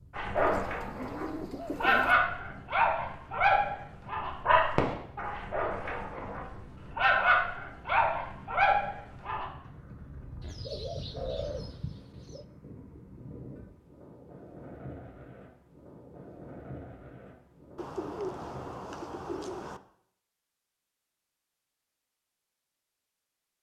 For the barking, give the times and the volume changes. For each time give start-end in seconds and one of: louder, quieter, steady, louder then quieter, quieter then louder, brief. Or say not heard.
0.1-9.4 steady.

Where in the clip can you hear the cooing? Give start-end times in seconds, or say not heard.
0.3-2.2, 10.4-12.4, 17.8-19.8.